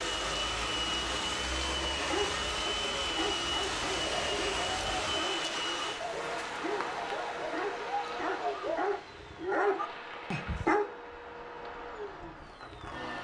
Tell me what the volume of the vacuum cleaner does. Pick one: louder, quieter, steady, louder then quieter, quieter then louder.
quieter.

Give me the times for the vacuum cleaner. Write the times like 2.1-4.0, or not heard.
0.0-13.1.